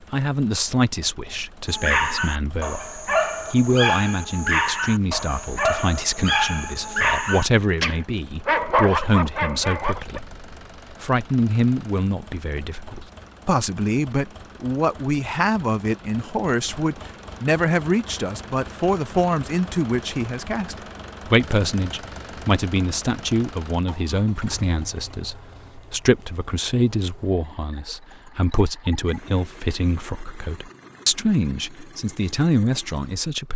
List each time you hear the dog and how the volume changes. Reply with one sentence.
The dog can be heard from 1.6 to 10.2 s, at a steady volume.